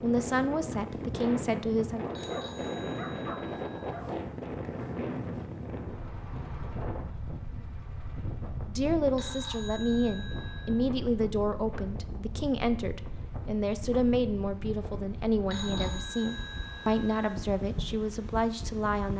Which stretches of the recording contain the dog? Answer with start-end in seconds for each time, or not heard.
2.3-4.2.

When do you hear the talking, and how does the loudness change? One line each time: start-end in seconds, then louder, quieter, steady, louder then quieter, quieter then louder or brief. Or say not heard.
0.0-2.0 brief
8.7-19.1 steady.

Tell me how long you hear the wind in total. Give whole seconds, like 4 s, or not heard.
19 s.